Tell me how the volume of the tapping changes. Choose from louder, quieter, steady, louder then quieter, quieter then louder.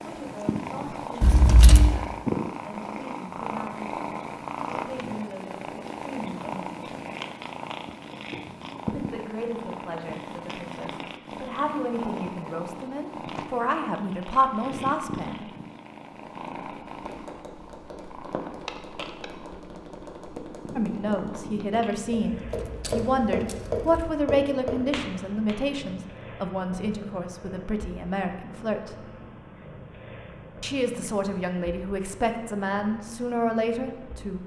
louder.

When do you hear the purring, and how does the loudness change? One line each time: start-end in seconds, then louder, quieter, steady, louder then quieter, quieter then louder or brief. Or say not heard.
0.0-34.4 quieter.